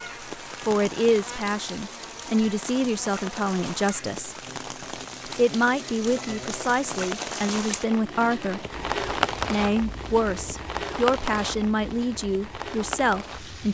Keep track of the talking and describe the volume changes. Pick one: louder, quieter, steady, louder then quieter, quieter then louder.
steady.